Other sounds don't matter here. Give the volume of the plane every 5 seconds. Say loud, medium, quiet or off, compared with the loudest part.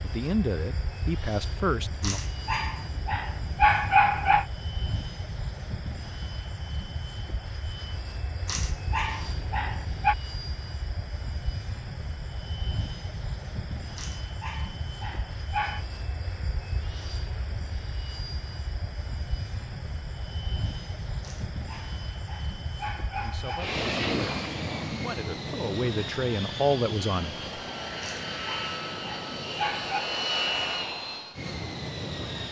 medium, medium, medium, medium, loud, loud, loud.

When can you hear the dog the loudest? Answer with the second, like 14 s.
4 s.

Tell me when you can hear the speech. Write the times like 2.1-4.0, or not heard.
0.0-2.2, 23.1-27.4.